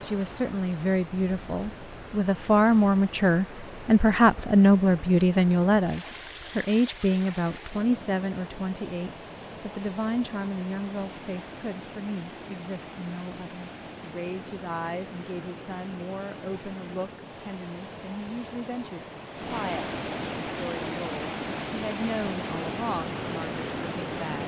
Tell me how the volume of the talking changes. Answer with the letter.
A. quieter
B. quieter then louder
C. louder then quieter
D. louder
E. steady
A.